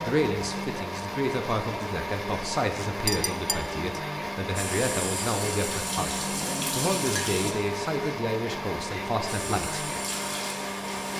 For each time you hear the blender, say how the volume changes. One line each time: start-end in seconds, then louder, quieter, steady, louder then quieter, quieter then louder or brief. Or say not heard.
0.0-11.1 steady.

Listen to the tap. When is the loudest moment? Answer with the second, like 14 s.
7 s.